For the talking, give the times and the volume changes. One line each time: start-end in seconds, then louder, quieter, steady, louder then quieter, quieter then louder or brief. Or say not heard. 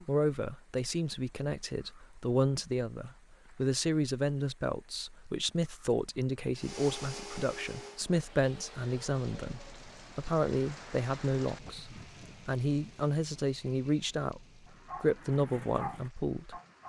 0.0-16.8 steady.